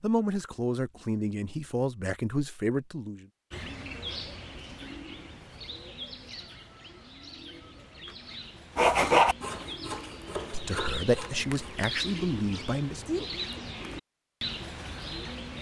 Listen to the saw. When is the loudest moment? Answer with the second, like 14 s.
9 s.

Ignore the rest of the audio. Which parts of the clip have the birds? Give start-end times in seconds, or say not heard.
3.5-15.5.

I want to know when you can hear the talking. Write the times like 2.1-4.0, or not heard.
0.0-3.2, 10.5-13.2.